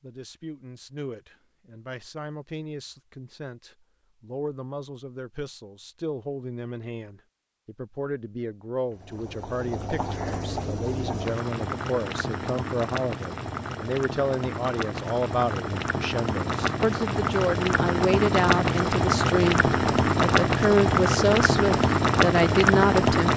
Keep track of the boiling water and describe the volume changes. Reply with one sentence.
The loudness of the boiling water goes up.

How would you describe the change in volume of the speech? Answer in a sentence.
The loudness of the speech goes up.